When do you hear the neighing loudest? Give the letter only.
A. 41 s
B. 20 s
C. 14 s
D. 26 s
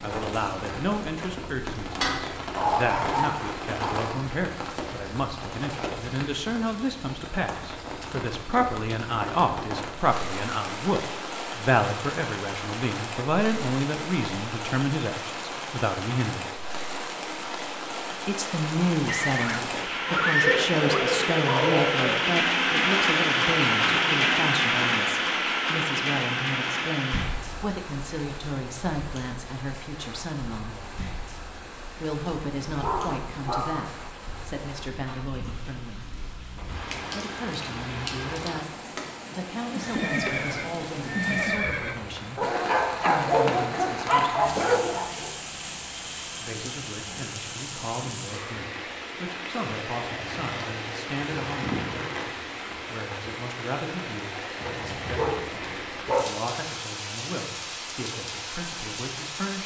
B.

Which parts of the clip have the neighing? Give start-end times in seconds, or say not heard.
19.1-21.0, 39.8-42.0.